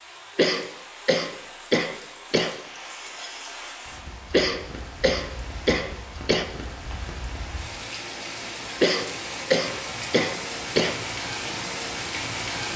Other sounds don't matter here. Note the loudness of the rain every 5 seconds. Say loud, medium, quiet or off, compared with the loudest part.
medium, medium, loud.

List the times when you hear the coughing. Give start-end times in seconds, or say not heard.
0.3-2.5, 4.3-6.5, 8.8-10.9.